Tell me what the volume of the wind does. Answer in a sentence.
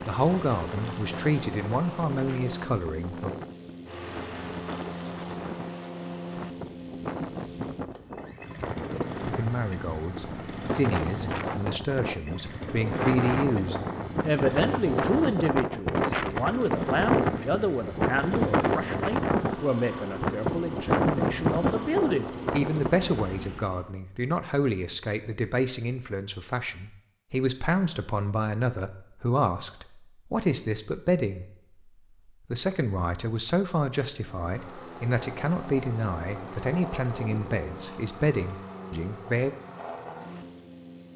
The volume of the wind goes up.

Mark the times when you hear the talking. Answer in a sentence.
You can hear the talking from 0.1 to 3.3 s, from 9.2 to 31.4 s and from 32.5 to 39.5 s.